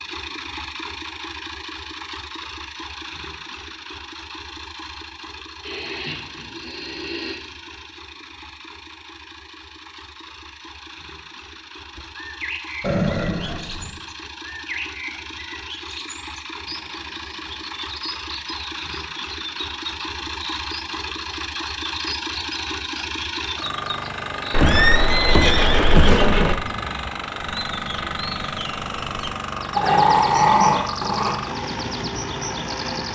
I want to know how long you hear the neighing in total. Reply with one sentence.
The neighing can be heard for 4 seconds in total.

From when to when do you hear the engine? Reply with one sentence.
You can hear the engine from 0.0 to 33.1 s.